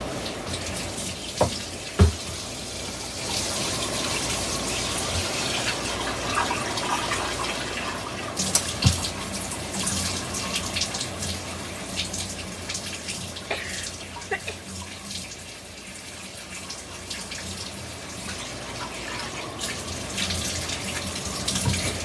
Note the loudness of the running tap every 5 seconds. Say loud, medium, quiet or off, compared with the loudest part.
loud, loud, medium, medium, loud.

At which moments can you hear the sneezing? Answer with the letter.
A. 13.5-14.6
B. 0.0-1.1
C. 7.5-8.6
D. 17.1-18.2
A.